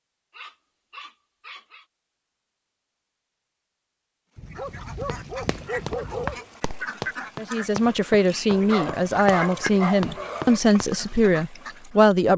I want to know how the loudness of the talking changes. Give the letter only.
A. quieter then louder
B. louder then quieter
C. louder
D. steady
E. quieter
D.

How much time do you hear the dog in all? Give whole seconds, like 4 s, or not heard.
6 s.